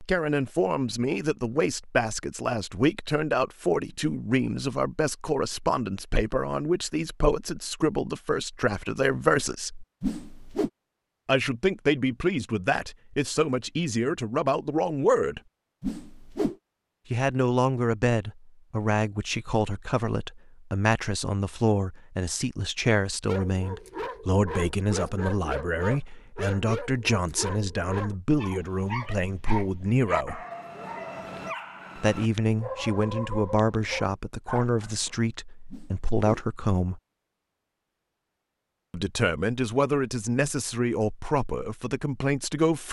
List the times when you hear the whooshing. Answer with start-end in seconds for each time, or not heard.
10.0-10.7, 15.8-16.6, 35.7-36.5.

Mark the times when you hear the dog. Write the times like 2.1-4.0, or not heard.
23.2-35.1.